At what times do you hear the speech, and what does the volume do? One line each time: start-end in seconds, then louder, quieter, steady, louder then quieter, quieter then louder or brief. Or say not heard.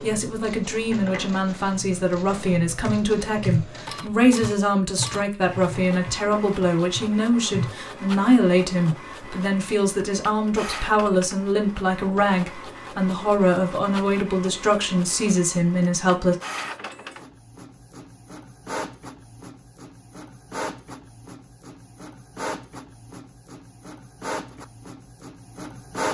0.0-16.4 steady.